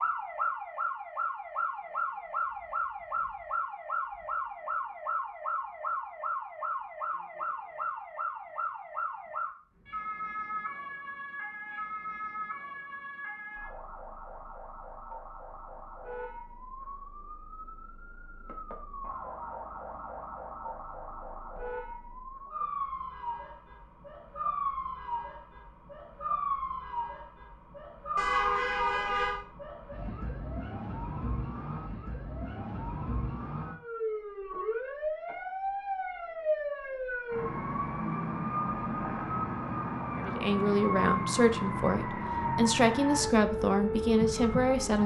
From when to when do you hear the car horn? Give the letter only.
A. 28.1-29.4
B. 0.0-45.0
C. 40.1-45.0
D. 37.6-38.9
A.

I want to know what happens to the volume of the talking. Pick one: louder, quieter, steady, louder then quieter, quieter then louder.
steady.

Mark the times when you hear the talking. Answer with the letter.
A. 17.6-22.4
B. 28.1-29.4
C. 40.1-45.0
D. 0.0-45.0
C.